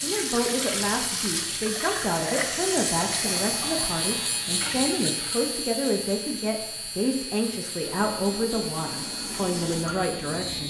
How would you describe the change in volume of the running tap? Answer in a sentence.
The loudness of the running tap goes down, then up.